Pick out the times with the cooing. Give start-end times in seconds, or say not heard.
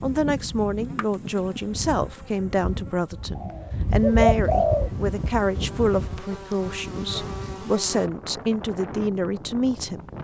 3.4-4.9.